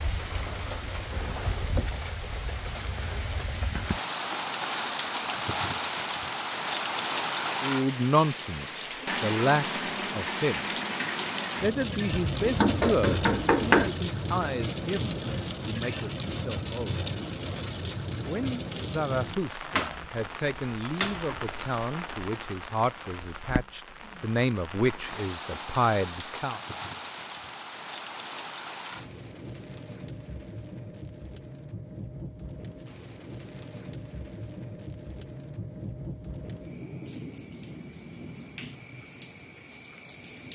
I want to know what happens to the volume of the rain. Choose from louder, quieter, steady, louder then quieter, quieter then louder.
quieter.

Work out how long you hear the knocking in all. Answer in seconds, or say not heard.
2 s.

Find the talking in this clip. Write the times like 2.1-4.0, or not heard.
7.6-10.8, 11.6-17.1, 18.2-26.6.